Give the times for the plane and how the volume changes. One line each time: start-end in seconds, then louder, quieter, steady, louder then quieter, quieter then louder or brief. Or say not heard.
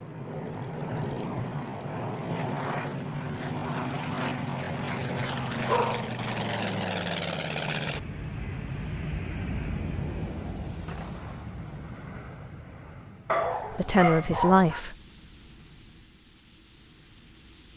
0.0-17.7 quieter.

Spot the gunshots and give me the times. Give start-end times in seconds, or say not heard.
10.8-11.6.